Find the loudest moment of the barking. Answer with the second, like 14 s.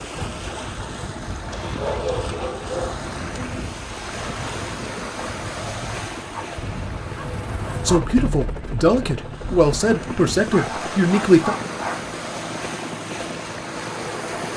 2 s.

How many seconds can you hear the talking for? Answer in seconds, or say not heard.
4 s.